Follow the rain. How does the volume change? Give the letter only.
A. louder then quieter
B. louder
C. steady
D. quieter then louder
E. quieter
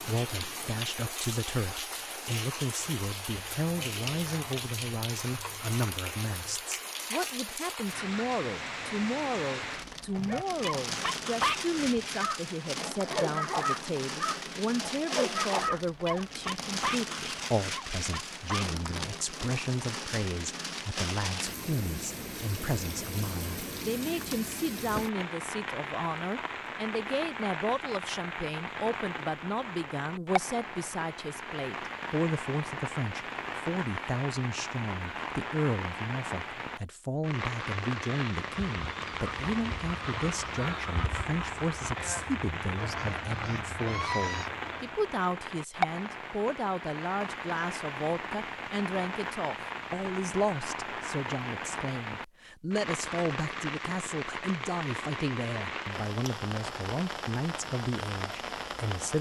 C.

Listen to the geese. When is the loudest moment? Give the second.
44 s.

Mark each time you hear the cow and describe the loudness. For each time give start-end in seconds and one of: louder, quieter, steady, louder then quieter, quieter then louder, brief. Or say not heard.
not heard.